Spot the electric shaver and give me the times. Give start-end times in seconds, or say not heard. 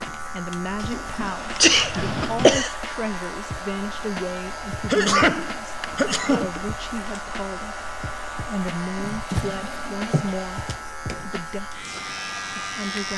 0.0-13.1.